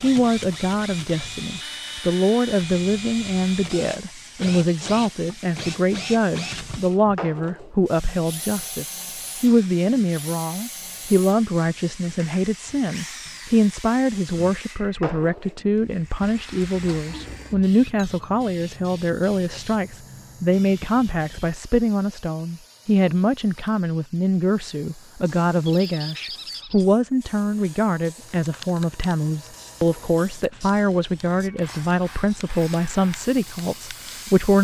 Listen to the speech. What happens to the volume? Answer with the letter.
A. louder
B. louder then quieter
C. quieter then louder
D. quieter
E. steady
E.